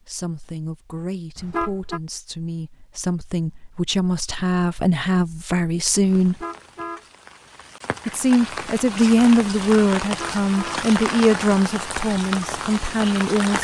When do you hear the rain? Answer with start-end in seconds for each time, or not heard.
6.0-13.5.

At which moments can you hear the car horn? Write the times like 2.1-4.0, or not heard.
1.4-2.0, 6.2-7.0, 10.0-10.8.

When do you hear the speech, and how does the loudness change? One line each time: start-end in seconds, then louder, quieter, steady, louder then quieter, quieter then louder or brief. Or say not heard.
0.1-6.5 louder
8.1-13.5 quieter.